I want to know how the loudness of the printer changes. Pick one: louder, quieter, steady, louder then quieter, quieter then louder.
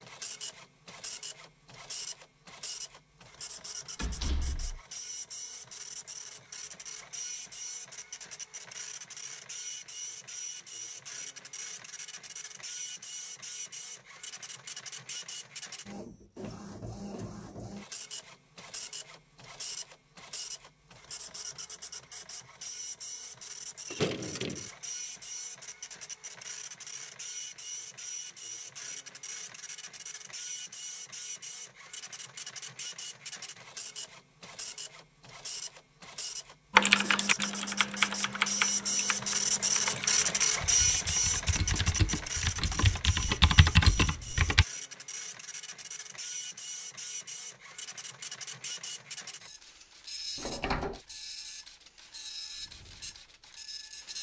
louder then quieter.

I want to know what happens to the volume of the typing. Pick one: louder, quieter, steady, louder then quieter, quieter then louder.
quieter then louder.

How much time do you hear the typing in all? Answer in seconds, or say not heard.
8 s.